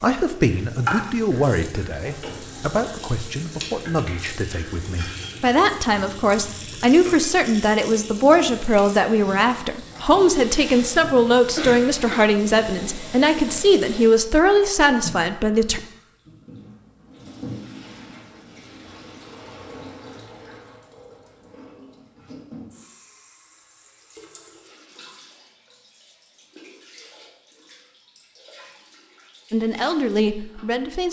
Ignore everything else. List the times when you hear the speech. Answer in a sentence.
The speech can be heard from 0.0 to 15.8 s and from 29.5 to 31.0 s.